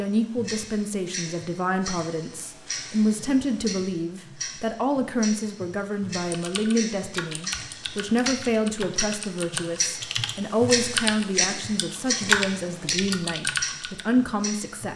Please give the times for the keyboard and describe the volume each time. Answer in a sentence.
The keyboard can be heard from 6.3 to 14.1 s, getting louder.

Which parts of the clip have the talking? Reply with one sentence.
The talking can be heard from 0.0 to 14.9 s.